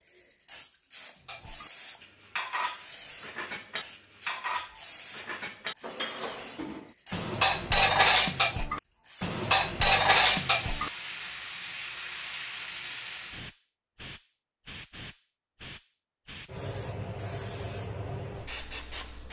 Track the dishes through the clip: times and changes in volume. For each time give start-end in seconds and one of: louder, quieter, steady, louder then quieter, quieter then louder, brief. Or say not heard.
1.2-10.9 louder.